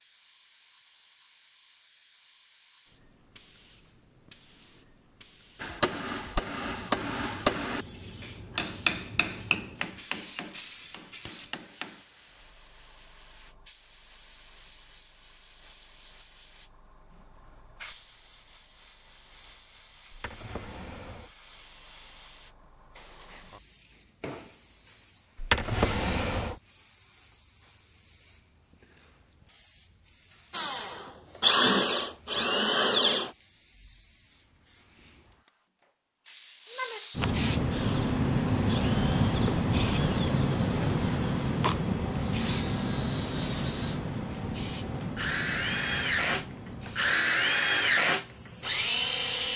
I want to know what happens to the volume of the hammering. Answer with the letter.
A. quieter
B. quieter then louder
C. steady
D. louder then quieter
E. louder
A.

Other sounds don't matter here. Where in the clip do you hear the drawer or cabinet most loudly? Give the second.
26 s.